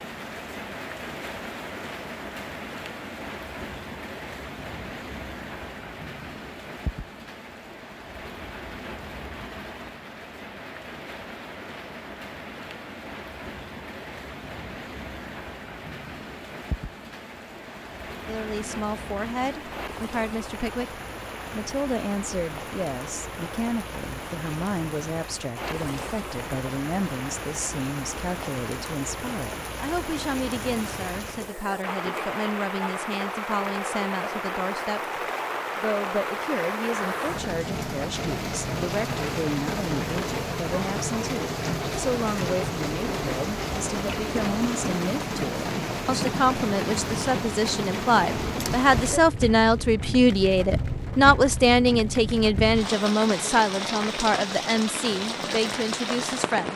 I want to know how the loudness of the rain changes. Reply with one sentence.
The loudness of the rain goes up.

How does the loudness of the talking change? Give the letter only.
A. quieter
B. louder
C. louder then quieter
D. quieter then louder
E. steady
B.